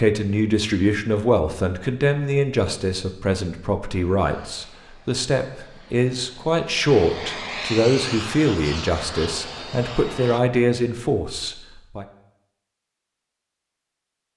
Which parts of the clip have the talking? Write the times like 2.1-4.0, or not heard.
0.0-12.1.